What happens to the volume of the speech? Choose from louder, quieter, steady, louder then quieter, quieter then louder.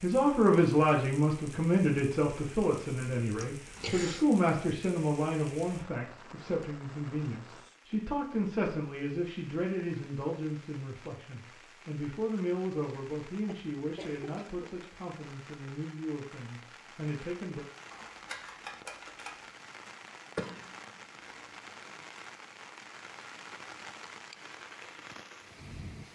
quieter.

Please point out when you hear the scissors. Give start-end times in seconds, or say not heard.
17.9-19.4.